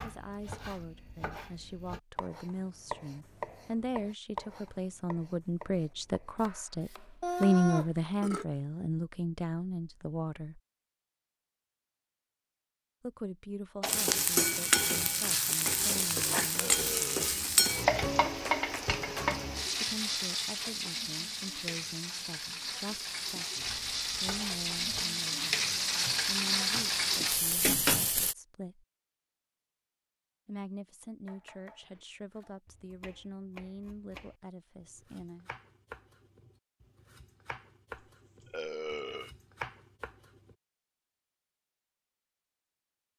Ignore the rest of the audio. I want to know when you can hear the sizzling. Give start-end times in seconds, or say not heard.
13.8-28.4.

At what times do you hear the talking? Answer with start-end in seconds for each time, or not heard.
0.0-10.6, 13.0-17.2, 19.7-25.6, 26.2-28.9, 30.4-35.5.